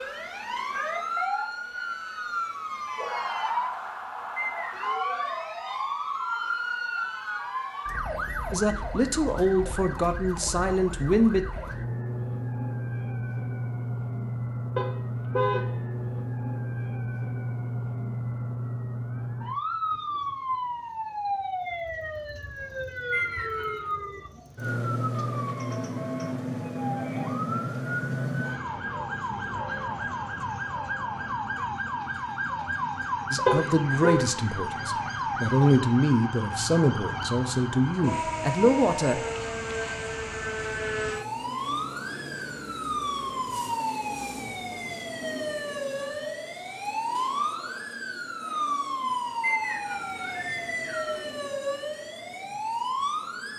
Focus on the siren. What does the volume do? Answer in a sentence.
The loudness of the siren stays about the same.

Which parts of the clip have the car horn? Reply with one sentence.
You can hear the car horn from 14.8 to 15.8 s and from 33.5 to 34.2 s.